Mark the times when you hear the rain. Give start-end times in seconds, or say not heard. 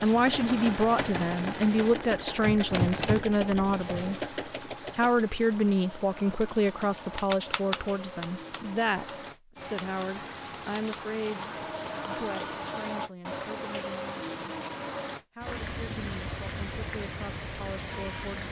0.0-18.4.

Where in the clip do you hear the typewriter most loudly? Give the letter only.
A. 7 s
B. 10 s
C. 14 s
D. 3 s
D.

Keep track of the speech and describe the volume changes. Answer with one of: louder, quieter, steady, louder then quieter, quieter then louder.
quieter.